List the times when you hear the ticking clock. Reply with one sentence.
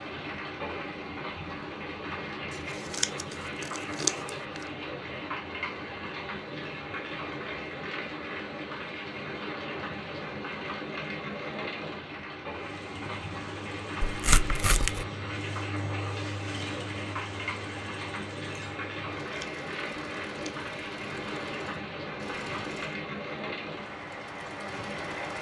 The ticking clock can't be heard in this clip.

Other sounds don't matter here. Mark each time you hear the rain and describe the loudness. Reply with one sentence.
You can hear the rain from 0.0 to 25.3 s, at a steady volume.